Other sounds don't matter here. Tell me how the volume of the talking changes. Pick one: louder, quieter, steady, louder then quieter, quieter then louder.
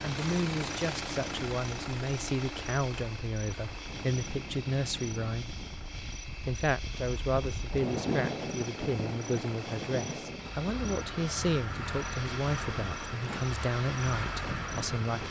steady.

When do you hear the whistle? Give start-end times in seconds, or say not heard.
not heard.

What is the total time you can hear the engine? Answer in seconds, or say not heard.
15 s.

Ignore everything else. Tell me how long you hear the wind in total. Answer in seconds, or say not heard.
15 s.